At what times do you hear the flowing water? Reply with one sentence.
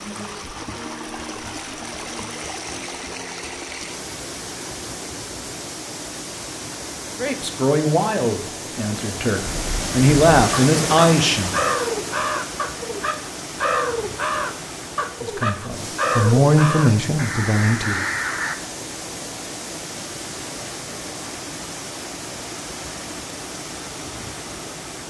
You can hear the flowing water from 0.0 to 25.0 s.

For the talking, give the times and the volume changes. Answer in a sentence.
You can hear the talking from 7.2 to 11.6 s, getting quieter then louder; and briefly from 15.2 to 18.0 s.